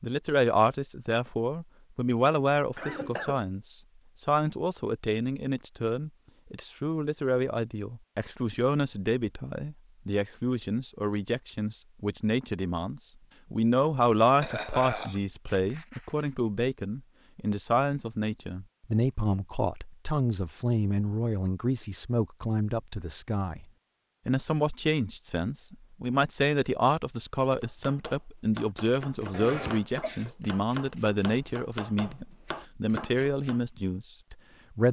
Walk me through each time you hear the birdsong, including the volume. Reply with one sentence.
The birdsong can't be heard in this clip.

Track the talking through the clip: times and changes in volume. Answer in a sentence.
The talking can be heard from 0.0 to 23.6 s, at a steady volume; and from 24.2 to 34.8 s, at a steady volume.